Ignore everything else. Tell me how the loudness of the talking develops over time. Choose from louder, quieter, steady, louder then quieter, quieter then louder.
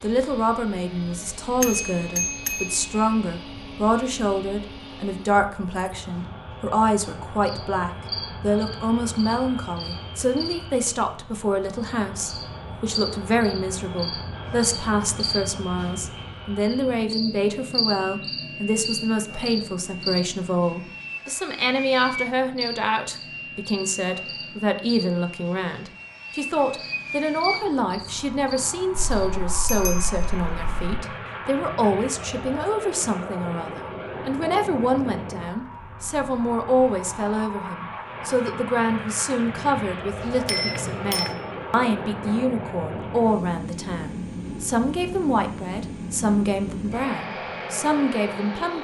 steady.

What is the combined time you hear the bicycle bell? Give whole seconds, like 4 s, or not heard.
4 s.